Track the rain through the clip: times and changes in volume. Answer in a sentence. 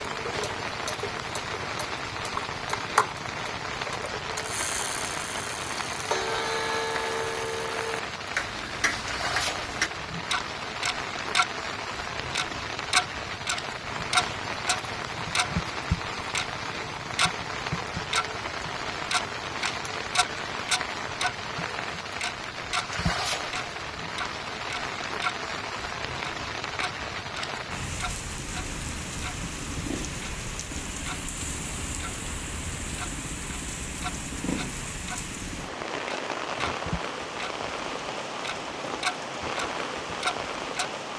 You can hear the rain from 0.0 to 41.1 s, at a steady volume.